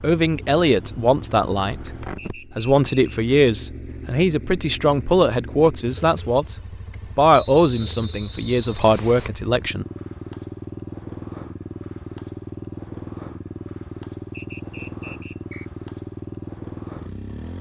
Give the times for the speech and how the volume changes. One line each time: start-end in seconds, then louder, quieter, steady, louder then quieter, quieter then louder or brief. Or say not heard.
0.0-6.5 quieter then louder
7.2-9.8 brief.